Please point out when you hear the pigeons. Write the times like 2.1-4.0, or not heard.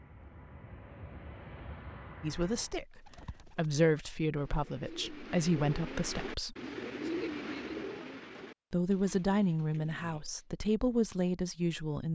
2.9-10.4.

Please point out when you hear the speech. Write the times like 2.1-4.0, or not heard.
2.2-6.5, 8.7-12.0.